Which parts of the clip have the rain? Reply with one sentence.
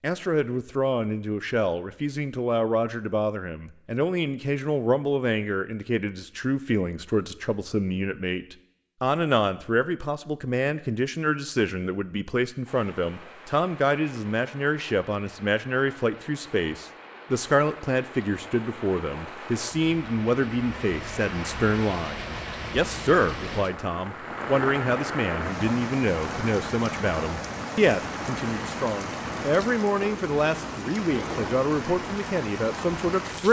You can hear the rain from 12.7 to 33.4 s.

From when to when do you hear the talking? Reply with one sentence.
The talking can be heard from 0.0 to 33.4 s.